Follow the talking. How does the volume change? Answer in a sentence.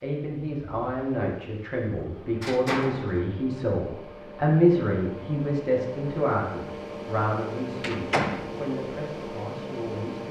The loudness of the talking goes up, then down.